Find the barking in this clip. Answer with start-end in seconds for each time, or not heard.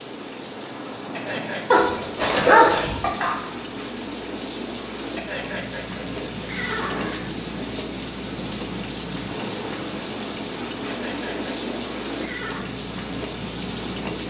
1.7-3.4.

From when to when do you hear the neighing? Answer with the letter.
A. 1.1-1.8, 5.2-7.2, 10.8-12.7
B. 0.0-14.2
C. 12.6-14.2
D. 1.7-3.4
A.